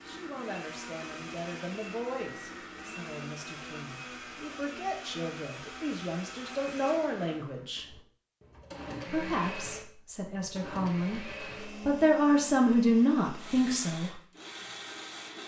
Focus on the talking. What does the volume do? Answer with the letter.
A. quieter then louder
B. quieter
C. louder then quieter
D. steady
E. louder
E.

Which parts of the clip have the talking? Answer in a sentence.
The talking can be heard from 0.0 to 7.8 s and from 9.1 to 14.2 s.